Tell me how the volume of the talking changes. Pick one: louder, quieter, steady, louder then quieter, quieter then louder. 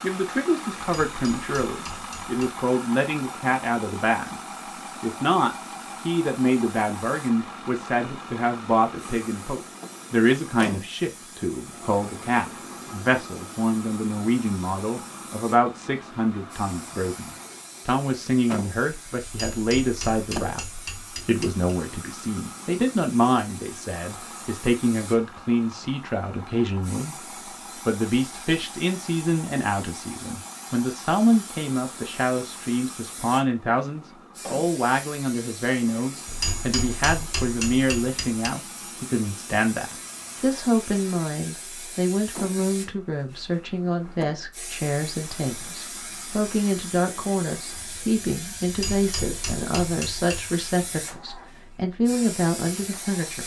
steady.